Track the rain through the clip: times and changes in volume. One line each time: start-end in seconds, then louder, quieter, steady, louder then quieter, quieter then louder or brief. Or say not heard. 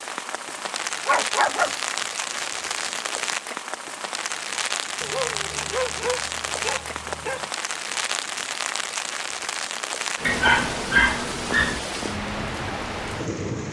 0.0-13.6 steady.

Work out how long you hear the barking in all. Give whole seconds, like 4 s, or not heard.
6 s.